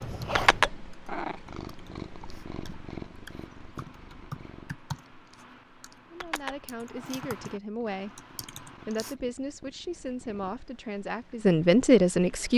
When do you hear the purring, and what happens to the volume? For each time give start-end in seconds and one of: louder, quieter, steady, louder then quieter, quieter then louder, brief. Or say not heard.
0.1-12.5 quieter.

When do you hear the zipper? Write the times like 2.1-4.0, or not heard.
0.0-0.7.